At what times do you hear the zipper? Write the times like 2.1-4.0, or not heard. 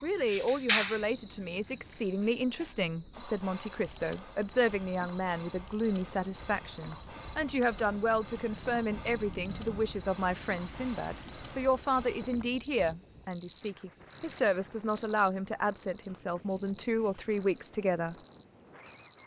not heard.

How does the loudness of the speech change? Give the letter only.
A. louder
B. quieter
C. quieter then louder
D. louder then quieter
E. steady
E.